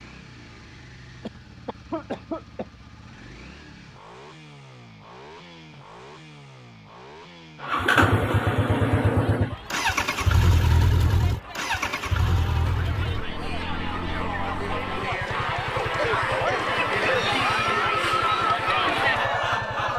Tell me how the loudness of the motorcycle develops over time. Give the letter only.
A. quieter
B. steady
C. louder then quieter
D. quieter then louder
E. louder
C.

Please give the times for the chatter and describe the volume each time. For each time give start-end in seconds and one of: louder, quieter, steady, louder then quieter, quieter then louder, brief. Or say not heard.
8.8-19.9 louder.